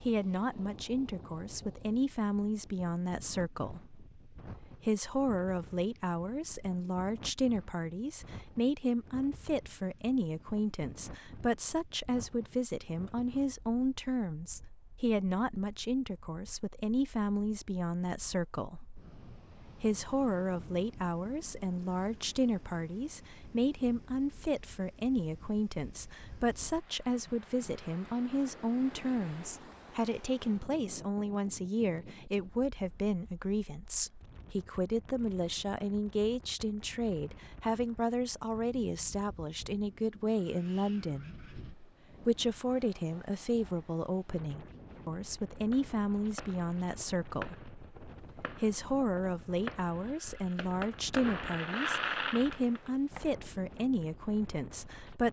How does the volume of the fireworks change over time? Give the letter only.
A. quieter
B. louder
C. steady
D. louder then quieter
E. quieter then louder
E.